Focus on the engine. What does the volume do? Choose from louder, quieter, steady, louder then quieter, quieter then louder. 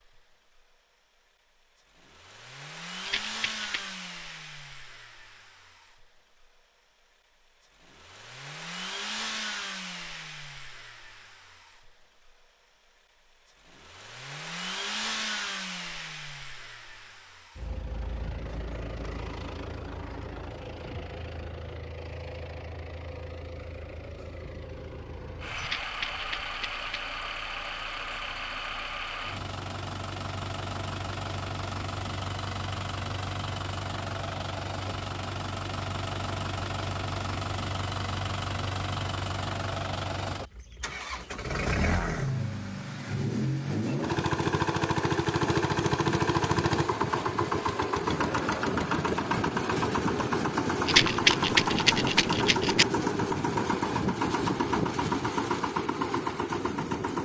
louder.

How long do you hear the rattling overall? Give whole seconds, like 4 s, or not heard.
4 s.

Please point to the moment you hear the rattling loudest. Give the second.
51 s.